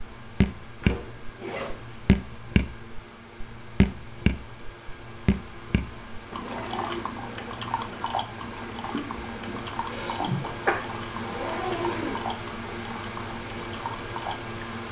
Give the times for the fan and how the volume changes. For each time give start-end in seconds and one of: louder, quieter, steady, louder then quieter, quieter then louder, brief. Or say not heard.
0.0-14.8 louder.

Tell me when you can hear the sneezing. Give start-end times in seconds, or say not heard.
8.9-10.8.